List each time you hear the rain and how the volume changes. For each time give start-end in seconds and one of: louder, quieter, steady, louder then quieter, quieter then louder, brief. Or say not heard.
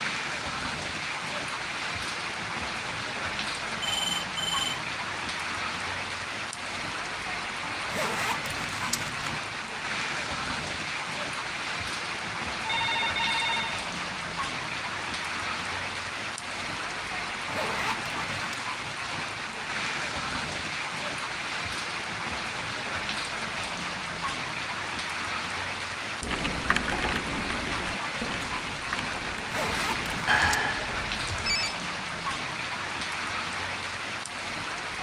0.0-34.9 steady.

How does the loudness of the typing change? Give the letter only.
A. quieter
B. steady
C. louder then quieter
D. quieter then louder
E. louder
D.